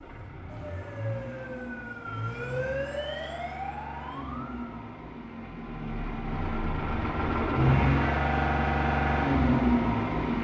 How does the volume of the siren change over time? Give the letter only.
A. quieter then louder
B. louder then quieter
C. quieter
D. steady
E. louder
B.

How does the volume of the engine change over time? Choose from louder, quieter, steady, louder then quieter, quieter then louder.
louder.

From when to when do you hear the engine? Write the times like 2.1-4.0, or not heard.
0.0-10.3.